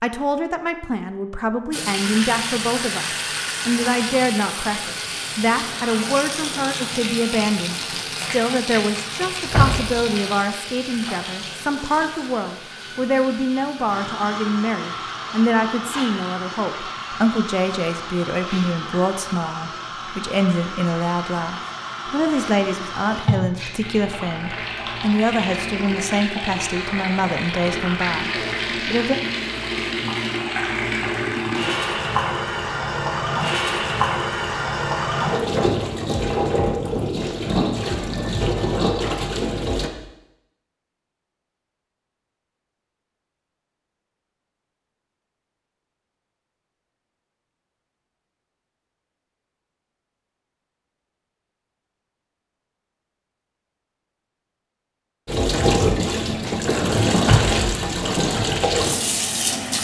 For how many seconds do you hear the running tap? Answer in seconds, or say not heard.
43 s.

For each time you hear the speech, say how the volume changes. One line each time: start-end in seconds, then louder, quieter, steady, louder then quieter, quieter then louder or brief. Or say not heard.
0.0-29.1 steady.